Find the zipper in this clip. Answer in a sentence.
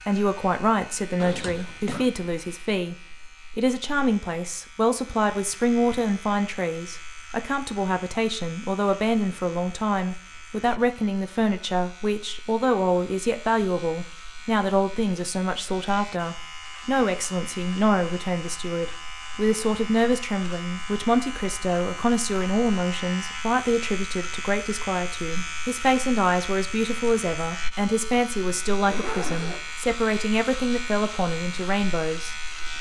The zipper can be heard from 1.2 to 2.0 s and from 28.8 to 29.9 s.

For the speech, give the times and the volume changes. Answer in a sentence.
The speech can be heard briefly from 0.0 to 3.0 s; and from 3.5 to 32.5 s, at a steady volume.